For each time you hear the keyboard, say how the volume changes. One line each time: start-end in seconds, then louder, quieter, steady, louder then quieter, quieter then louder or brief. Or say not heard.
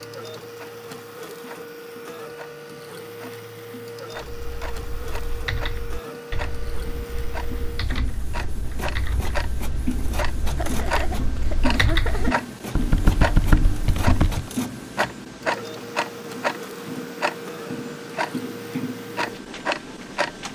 4.3-14.5 louder.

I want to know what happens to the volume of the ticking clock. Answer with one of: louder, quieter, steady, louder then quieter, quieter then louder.
louder.